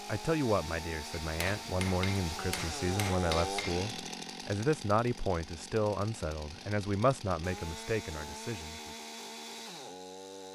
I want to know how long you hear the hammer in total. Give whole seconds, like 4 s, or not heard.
3 s.